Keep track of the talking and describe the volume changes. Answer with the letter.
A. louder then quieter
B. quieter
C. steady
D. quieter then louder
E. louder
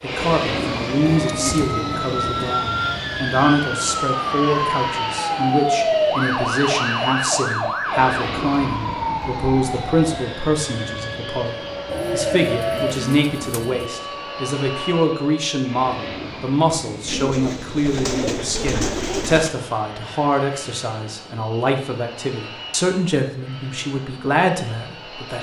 C.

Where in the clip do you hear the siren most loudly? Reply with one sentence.
The loudest moment of the siren is at 6 seconds.